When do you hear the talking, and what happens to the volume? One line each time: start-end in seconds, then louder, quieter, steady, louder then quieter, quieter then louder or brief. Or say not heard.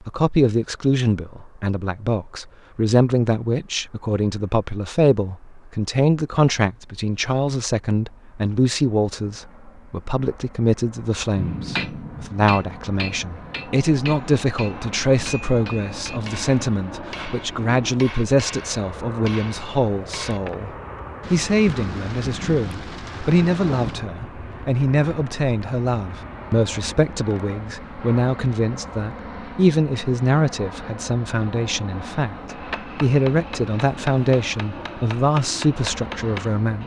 0.1-36.8 steady.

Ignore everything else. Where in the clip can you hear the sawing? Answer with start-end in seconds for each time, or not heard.
not heard.